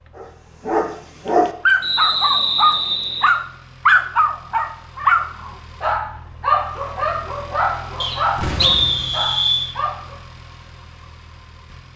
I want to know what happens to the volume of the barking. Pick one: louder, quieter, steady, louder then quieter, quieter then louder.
quieter.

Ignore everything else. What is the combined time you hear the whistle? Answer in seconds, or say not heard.
3 s.